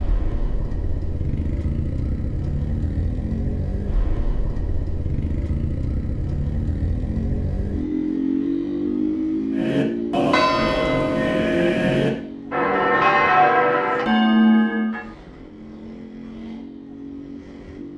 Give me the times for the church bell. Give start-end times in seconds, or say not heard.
9.5-15.1.